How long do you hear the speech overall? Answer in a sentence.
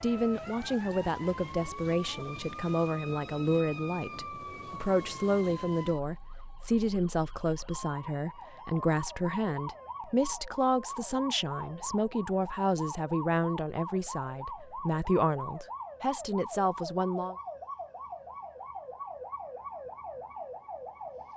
You can hear the speech for 17 seconds altogether.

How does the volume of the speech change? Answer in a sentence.
The volume of the speech stays about the same.